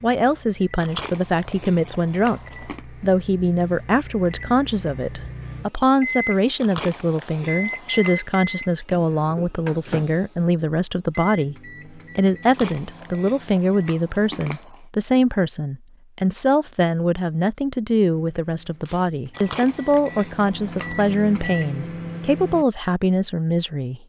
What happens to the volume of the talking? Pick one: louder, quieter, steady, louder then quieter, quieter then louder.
steady.